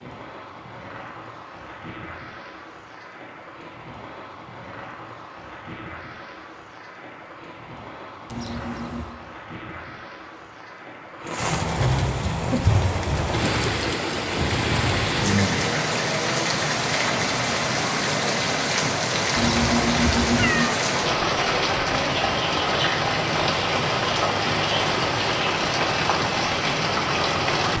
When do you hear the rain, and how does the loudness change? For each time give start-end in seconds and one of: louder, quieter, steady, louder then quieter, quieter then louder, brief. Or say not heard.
0.0-27.7 louder.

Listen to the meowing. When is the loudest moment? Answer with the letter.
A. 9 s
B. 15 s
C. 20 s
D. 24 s
C.